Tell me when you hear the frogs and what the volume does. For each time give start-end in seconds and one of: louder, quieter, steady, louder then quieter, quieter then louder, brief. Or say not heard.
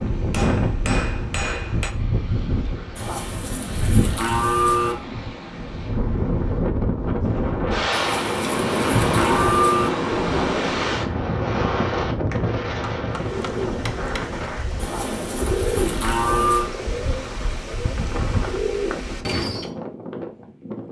not heard.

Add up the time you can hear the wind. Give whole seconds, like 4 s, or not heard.
21 s.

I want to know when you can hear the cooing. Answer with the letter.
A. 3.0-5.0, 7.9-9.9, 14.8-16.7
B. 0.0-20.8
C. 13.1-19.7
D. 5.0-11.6
C.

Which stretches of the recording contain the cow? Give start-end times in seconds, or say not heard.
3.0-5.0, 7.9-9.9, 14.8-16.7.